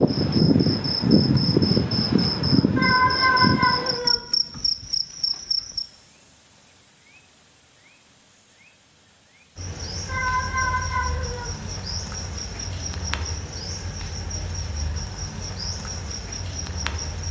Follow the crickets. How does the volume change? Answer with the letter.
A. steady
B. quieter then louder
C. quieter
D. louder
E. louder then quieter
B.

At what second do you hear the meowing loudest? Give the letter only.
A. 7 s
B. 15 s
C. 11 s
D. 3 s
D.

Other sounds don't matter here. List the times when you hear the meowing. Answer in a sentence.
The meowing can be heard from 2.8 to 4.2 s and from 10.1 to 11.6 s.